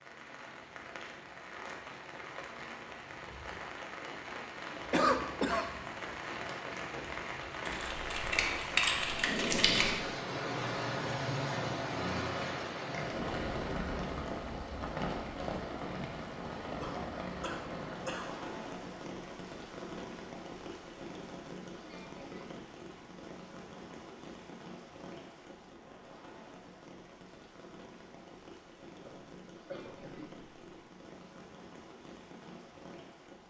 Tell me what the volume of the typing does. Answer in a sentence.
The volume of the typing goes down.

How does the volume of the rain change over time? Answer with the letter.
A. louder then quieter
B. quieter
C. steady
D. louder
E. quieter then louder
A.